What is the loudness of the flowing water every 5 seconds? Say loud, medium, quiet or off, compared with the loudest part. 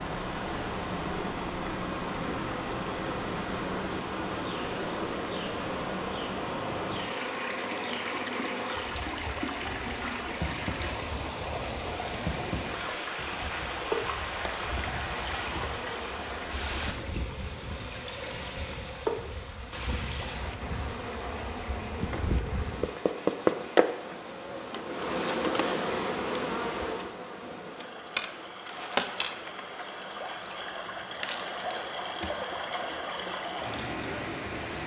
loud, loud, loud, loud, medium, medium, loud.